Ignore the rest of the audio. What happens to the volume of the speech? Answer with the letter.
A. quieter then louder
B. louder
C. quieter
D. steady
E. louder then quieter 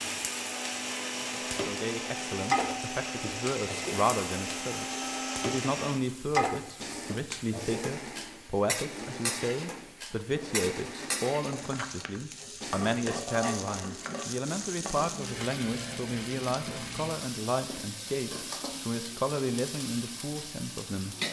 D.